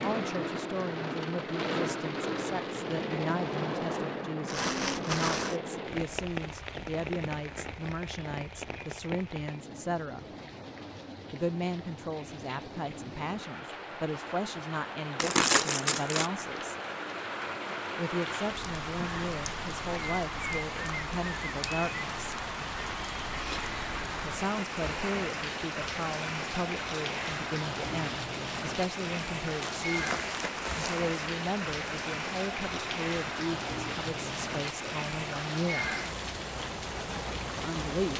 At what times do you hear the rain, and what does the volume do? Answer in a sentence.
You can hear the rain from 0.0 to 38.1 s, getting quieter then louder.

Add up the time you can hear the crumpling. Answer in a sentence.
You can hear the crumpling for 4 seconds altogether.